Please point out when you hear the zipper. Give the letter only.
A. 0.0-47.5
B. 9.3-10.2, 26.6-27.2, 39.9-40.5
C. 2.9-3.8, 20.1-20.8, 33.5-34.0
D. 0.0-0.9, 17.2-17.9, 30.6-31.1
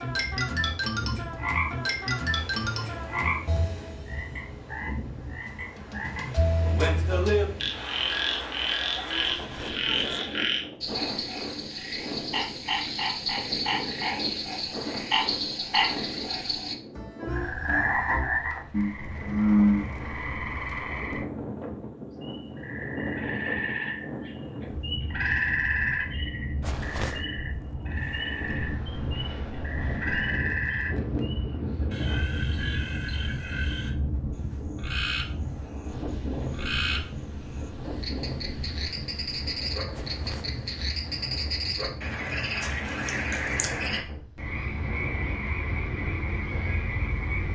B.